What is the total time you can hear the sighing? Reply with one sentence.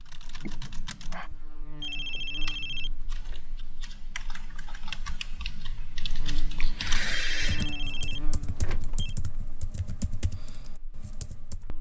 You can hear the sighing for 2 seconds altogether.